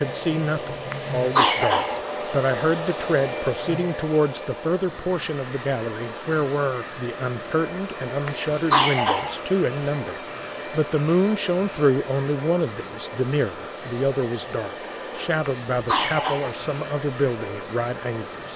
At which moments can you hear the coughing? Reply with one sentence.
You can hear the coughing from 0.9 to 2.0 s, from 8.2 to 9.3 s and from 15.4 to 16.6 s.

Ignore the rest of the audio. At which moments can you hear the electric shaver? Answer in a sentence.
The electric shaver can't be heard in this clip.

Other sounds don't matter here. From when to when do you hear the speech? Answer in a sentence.
You can hear the speech from 0.0 to 18.5 s.